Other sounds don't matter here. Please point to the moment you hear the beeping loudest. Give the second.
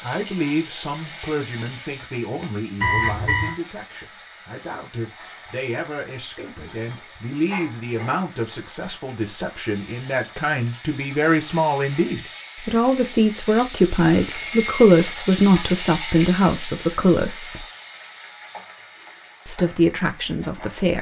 3 s.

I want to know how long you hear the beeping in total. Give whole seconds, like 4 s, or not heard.
2 s.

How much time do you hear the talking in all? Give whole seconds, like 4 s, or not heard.
19 s.